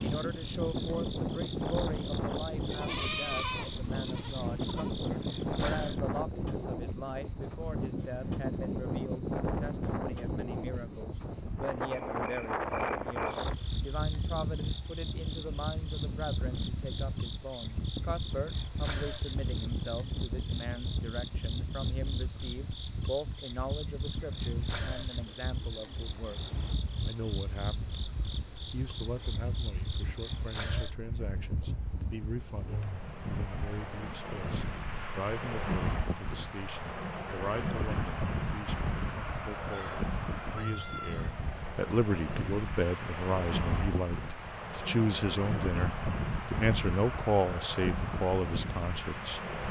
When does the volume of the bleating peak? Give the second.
3 s.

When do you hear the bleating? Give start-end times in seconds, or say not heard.
2.7-5.0, 39.7-41.5.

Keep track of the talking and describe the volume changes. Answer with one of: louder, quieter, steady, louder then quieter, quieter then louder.
louder.